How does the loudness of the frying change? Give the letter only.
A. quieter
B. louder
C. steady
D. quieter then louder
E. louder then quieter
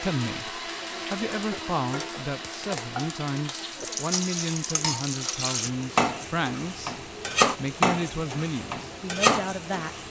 B.